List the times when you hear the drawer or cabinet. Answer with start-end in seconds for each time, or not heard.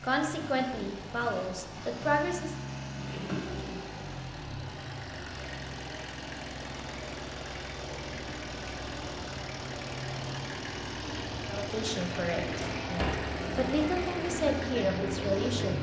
2.9-3.9, 12.4-13.2.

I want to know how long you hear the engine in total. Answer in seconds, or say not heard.
16 s.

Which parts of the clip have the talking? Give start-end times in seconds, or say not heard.
0.0-2.5, 11.4-15.7.